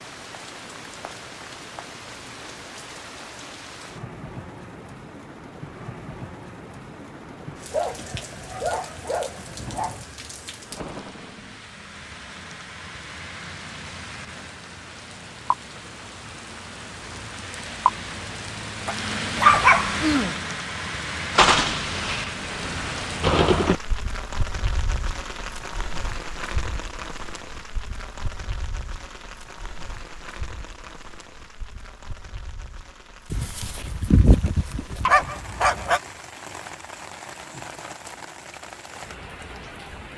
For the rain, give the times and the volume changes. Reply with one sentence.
The rain can be heard from 0.0 to 40.1 s, getting louder then quieter.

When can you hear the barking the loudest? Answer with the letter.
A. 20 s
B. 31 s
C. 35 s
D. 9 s
A.